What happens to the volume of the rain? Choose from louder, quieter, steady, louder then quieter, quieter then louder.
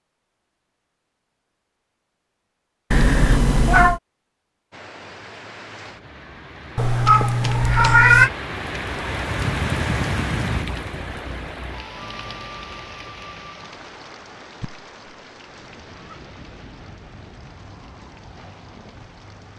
louder then quieter.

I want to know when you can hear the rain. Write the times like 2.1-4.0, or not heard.
4.7-19.5.